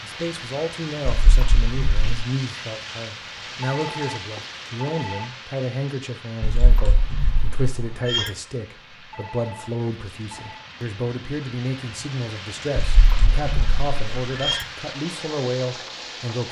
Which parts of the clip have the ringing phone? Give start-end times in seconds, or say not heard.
3.6-5.2, 9.1-10.7.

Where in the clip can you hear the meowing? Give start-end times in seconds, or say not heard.
1.1-2.2, 6.4-8.3, 12.8-14.7.